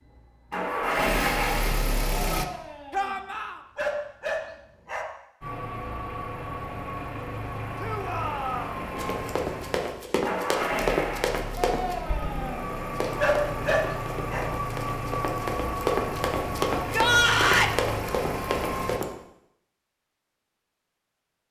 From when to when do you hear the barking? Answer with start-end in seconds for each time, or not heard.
2.4-5.0, 11.6-14.4.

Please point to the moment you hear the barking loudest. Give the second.
13 s.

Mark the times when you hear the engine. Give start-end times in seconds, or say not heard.
0.0-2.5, 5.4-19.0.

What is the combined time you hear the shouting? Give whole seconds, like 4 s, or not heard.
3 s.